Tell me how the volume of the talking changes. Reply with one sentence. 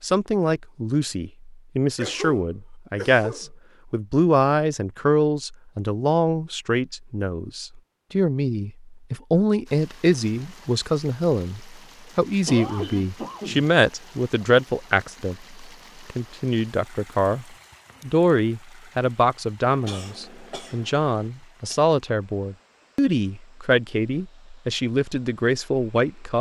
The loudness of the talking stays about the same.